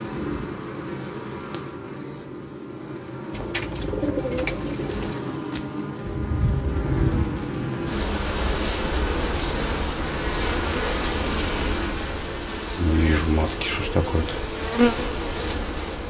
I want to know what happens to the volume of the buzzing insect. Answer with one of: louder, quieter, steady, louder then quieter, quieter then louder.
louder.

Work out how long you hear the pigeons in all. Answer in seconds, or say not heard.
2 s.